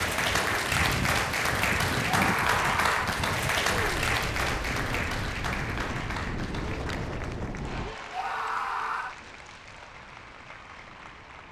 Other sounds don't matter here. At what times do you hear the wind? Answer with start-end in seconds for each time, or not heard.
0.0-11.4.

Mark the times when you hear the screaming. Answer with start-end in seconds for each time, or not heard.
2.1-3.0, 8.1-9.2.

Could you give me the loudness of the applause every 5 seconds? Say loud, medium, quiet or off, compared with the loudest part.
loud, medium, quiet.